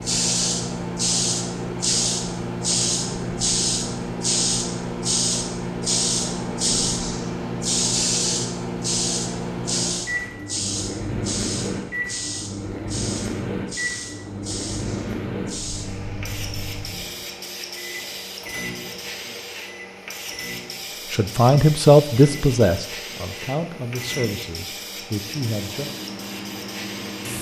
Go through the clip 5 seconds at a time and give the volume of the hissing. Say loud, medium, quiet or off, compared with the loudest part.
loud, loud, medium, medium, medium, medium.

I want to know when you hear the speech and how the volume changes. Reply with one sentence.
The speech can be heard from 21.1 to 25.9 s, getting quieter.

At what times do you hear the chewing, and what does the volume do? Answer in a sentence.
You can't hear the chewing here.